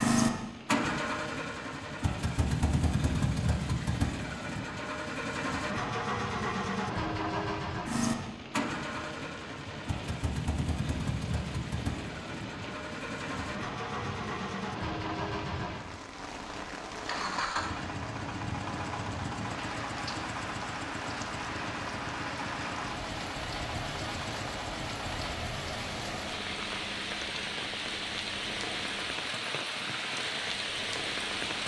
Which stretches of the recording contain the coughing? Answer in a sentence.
The coughing can't be heard in this clip.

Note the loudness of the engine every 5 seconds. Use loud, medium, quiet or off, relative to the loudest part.
loud, loud, medium, medium, medium, quiet, quiet.